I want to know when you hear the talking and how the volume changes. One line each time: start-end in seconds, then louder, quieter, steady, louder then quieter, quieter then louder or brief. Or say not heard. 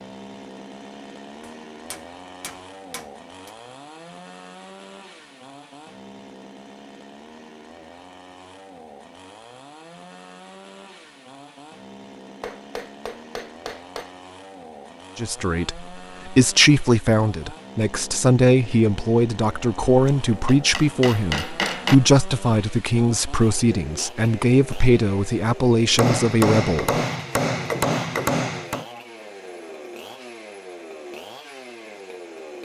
15.2-26.9 steady.